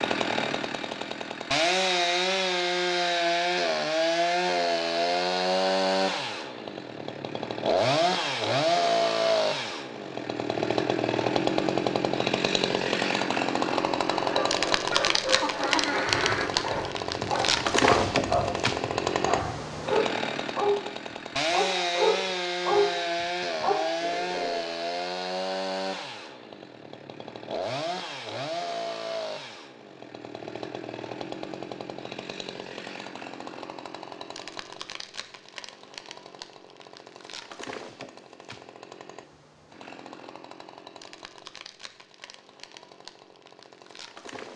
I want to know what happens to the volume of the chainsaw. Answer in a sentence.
The loudness of the chainsaw goes down.